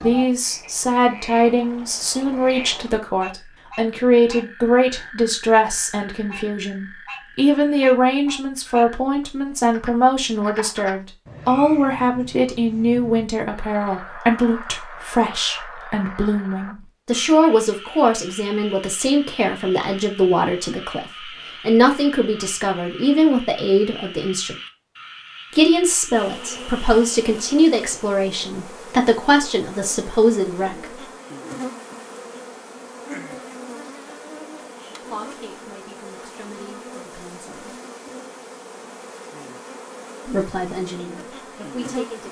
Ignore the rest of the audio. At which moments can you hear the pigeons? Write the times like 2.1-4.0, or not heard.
not heard.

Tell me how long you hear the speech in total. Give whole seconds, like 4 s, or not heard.
35 s.